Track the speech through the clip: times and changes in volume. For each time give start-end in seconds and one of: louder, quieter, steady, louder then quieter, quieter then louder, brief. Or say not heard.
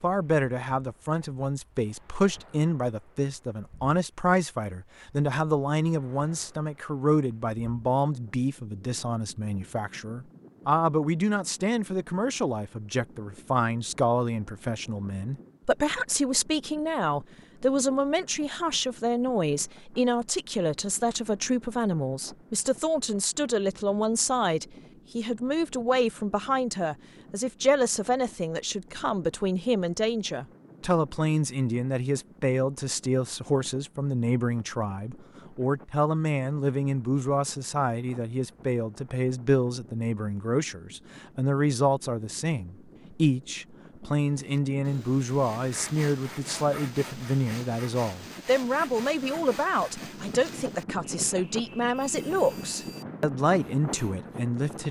0.0-54.8 steady.